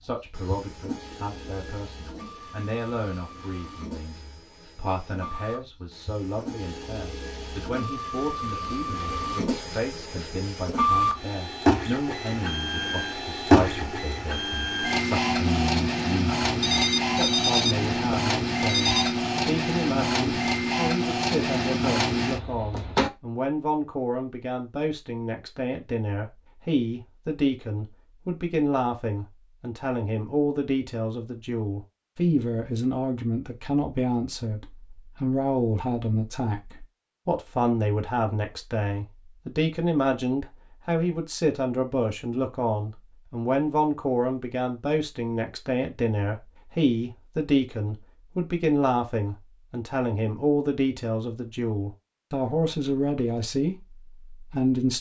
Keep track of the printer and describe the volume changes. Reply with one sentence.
The loudness of the printer goes up.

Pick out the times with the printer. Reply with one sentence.
You can hear the printer from 0.0 to 23.1 s.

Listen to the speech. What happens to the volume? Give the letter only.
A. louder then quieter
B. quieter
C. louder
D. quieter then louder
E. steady
C.